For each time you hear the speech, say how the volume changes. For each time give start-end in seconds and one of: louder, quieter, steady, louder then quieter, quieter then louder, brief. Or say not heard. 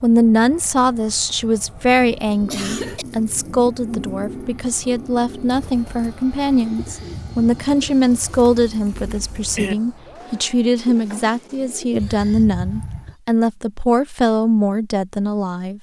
0.0-15.7 steady.